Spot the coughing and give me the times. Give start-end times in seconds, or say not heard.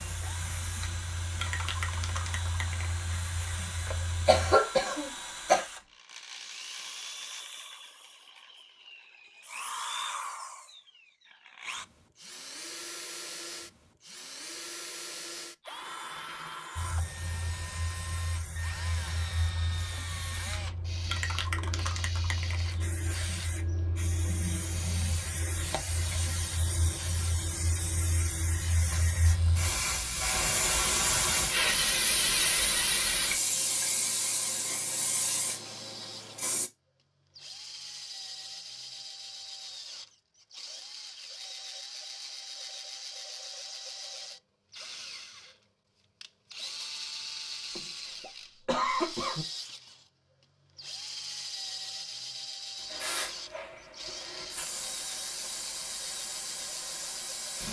3.9-5.7, 47.8-49.5.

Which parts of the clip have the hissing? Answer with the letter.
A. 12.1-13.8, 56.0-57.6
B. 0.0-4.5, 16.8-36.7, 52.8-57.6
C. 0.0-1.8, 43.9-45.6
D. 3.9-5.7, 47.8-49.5
B.